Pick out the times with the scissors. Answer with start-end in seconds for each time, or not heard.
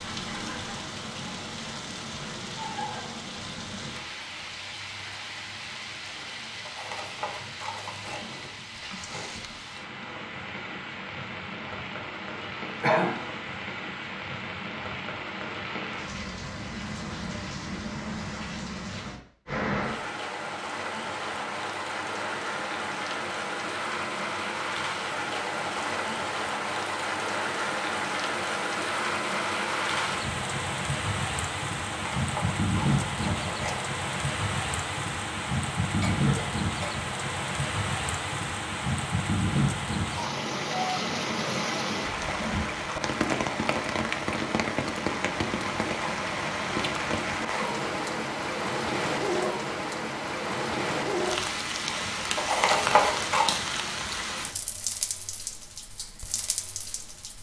6.7-8.2, 31.9-33.9, 52.4-53.5.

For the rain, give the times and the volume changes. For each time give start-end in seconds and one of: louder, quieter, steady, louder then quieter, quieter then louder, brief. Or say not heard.
0.0-57.3 louder.